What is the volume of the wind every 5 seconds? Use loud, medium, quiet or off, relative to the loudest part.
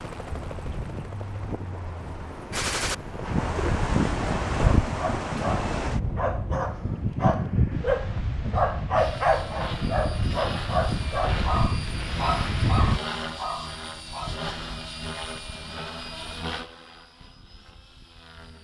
loud, loud, loud, off.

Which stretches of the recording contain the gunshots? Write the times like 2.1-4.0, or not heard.
2.5-3.0.